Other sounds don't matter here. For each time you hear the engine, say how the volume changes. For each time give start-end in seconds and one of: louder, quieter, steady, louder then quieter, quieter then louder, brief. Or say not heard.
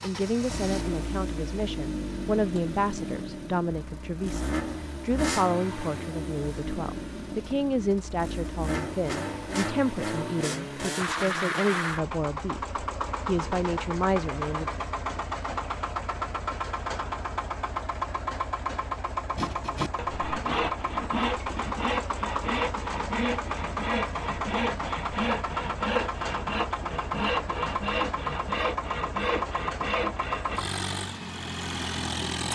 0.0-32.5 steady.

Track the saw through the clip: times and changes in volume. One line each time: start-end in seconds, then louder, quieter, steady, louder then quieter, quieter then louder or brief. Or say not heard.
19.4-30.6 steady.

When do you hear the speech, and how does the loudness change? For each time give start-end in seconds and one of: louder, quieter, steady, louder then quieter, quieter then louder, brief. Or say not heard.
0.0-14.8 steady.